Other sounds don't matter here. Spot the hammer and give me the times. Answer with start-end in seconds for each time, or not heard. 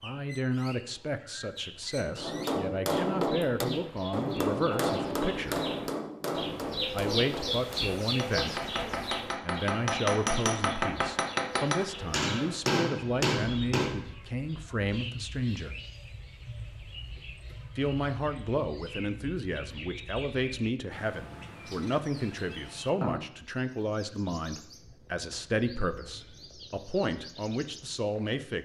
2.1-14.1.